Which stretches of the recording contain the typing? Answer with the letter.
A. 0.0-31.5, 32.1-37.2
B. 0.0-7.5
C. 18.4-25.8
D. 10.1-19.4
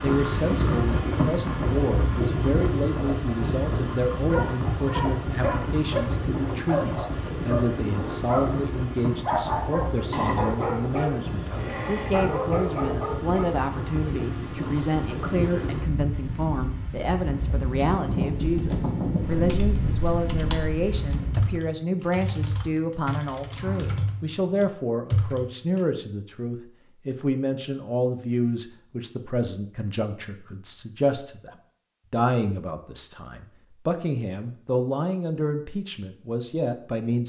C.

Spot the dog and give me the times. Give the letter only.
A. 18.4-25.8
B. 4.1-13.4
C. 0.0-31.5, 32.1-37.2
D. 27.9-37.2
B.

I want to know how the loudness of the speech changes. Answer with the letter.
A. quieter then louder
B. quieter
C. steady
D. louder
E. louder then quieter
C.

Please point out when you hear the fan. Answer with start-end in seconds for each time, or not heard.
0.0-21.6.